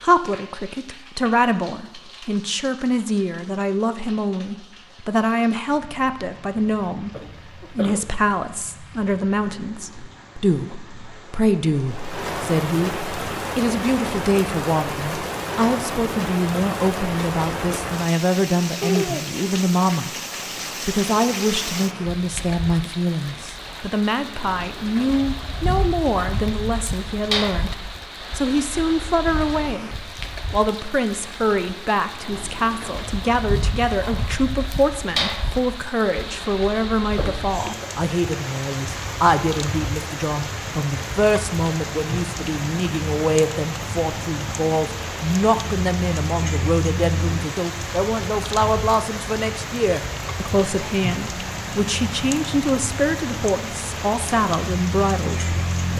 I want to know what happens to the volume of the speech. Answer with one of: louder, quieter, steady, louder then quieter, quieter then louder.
steady.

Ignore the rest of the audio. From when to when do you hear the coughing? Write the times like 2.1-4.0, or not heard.
7.1-8.2, 37.1-37.9.